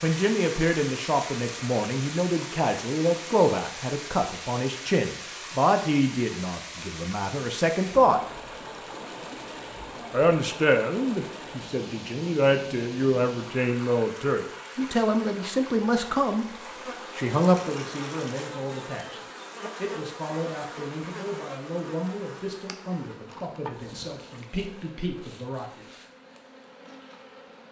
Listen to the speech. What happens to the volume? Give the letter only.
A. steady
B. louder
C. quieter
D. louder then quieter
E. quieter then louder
C.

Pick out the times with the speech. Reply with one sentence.
You can hear the speech from 0.0 to 8.2 s, from 10.1 to 16.4 s and from 17.1 to 25.9 s.